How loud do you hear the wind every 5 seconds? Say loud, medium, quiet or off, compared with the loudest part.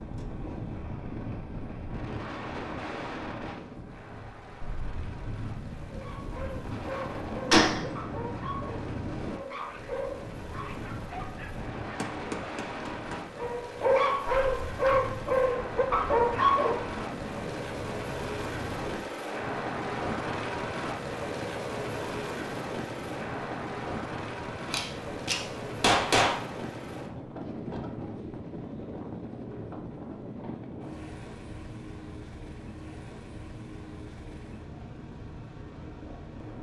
loud, loud, loud, loud, loud, loud, medium, medium.